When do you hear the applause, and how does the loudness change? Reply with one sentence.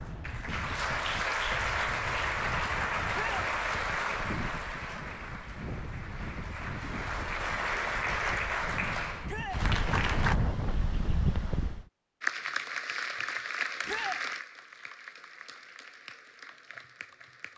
The applause can be heard from 0.0 to 10.3 s, getting quieter then louder; and from 12.2 to 17.5 s, getting quieter.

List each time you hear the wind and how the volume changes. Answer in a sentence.
You can hear the wind from 0.0 to 11.8 s, getting louder.